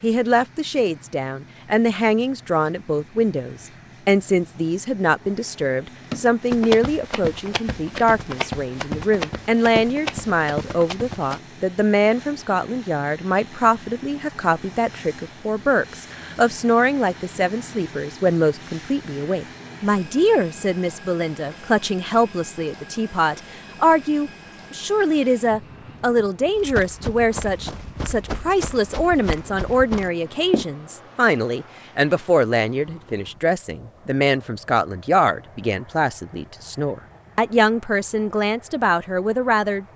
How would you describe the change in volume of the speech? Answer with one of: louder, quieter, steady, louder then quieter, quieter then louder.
steady.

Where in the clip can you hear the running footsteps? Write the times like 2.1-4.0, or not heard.
6.1-11.4, 26.6-30.6.